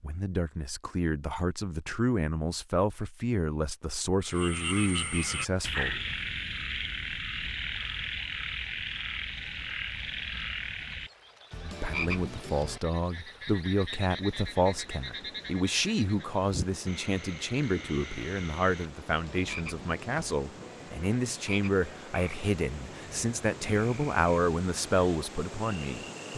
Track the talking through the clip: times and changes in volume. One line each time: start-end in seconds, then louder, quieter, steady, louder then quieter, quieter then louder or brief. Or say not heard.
0.0-6.0 steady
11.7-26.3 steady.